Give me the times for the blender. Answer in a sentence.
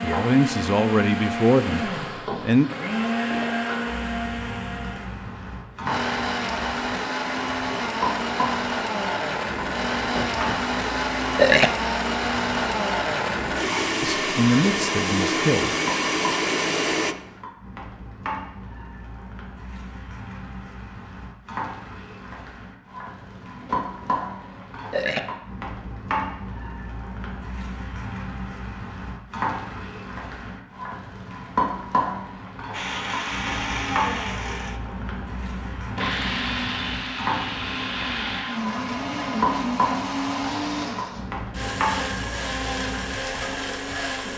The blender can be heard from 0.0 to 17.1 s and from 32.7 to 44.3 s.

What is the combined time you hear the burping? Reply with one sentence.
You can hear the burping for 4 seconds altogether.